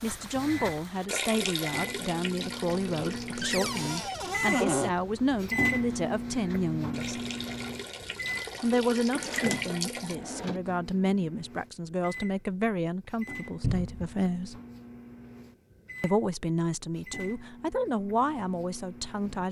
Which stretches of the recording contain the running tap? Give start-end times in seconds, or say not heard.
0.0-10.2.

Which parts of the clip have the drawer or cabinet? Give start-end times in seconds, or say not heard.
3.4-4.9, 9.2-10.6, 13.6-14.2.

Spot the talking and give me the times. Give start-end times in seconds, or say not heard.
0.0-7.2, 8.6-14.6, 16.0-19.4.